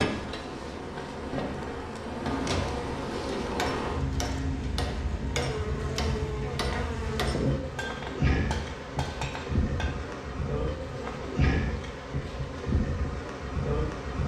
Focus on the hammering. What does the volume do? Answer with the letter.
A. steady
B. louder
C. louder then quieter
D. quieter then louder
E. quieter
A.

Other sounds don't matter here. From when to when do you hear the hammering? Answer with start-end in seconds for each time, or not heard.
3.5-9.9.